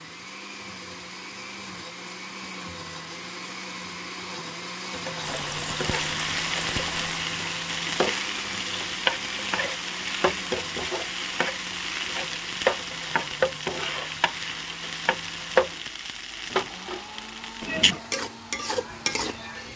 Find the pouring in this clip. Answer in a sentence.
The pouring can be heard from 5.2 to 7.3 s.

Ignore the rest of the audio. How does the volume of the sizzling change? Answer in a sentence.
The loudness of the sizzling stays about the same.